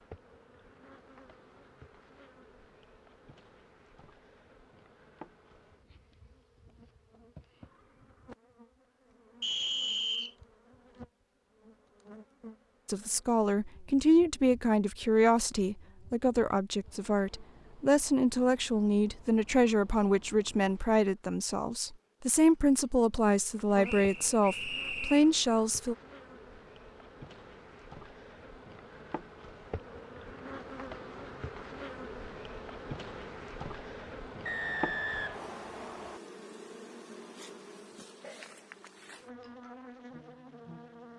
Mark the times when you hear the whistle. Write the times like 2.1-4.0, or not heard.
9.4-10.3, 23.8-25.2, 34.5-36.2.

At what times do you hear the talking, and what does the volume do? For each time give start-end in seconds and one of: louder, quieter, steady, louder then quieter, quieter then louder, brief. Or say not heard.
12.8-25.9 steady.